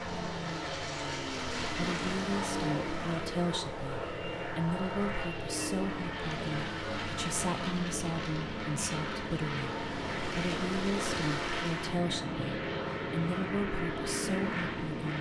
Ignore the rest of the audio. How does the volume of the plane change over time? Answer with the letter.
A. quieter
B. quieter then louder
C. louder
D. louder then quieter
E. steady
E.